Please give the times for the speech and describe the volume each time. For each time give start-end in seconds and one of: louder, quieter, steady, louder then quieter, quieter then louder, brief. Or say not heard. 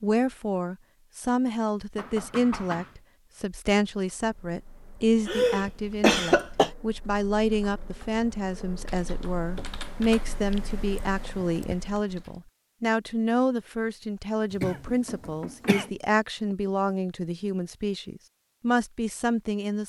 0.0-19.8 steady.